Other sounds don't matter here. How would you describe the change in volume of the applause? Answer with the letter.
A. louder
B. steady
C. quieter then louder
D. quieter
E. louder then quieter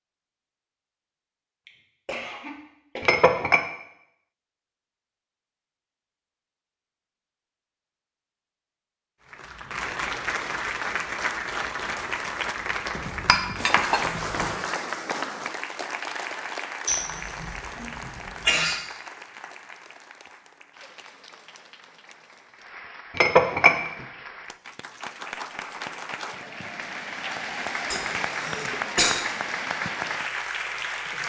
C.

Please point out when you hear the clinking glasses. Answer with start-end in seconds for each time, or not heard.
3.0-3.6, 12.9-14.6, 23.1-24.1.